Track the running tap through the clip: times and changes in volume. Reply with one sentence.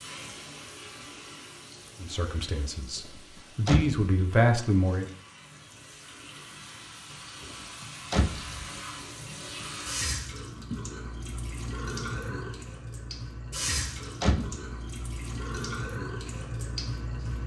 The running tap can be heard from 0.0 to 17.4 s, getting louder.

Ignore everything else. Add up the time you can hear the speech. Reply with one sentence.
You can hear the speech for 3 seconds altogether.